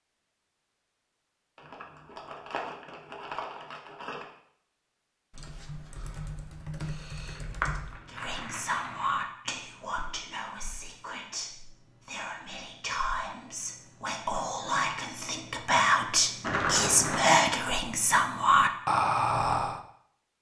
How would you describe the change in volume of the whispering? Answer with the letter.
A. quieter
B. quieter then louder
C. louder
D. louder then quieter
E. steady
B.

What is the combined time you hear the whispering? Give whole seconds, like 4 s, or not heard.
12 s.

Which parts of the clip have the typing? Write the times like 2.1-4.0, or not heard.
5.3-8.0.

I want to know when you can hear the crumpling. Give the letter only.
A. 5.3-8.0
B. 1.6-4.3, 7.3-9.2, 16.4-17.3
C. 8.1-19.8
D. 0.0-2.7
B.